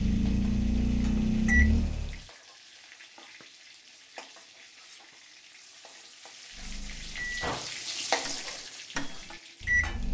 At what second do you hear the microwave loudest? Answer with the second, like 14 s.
1 s.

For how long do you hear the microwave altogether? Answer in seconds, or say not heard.
6 s.